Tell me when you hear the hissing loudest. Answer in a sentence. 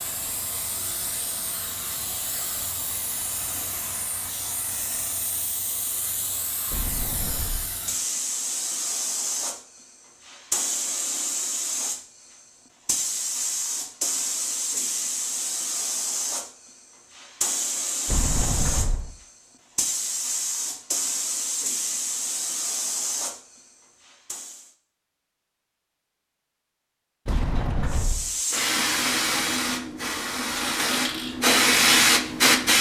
The loudest moment of the hissing is at 32 seconds.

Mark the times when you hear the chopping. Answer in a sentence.
The chopping can't be heard in this clip.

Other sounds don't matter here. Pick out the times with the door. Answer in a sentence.
You can hear the door from 6.7 to 7.8 s, from 18.1 to 19.1 s and from 27.2 to 28.3 s.